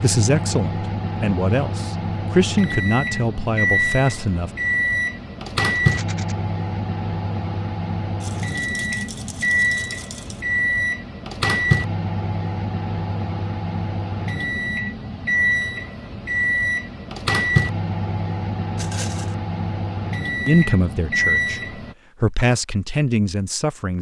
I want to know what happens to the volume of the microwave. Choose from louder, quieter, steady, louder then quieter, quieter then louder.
steady.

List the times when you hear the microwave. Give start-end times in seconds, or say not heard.
0.0-21.9.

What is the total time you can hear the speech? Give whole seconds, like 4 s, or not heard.
8 s.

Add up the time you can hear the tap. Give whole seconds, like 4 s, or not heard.
not heard.